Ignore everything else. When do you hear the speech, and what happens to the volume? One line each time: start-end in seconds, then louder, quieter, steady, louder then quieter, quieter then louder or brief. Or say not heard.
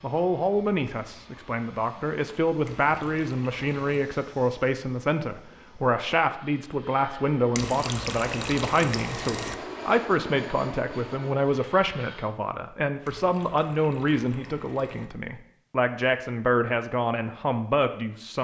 0.0-18.3 steady.